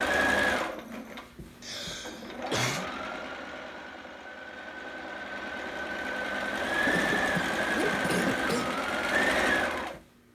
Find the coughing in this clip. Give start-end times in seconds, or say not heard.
1.6-2.9, 6.8-8.8.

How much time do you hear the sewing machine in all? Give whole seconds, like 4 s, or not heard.
10 s.